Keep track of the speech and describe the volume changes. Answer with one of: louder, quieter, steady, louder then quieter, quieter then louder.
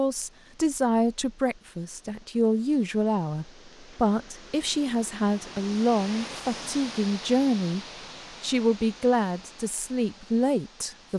steady.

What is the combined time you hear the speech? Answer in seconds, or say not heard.
11 s.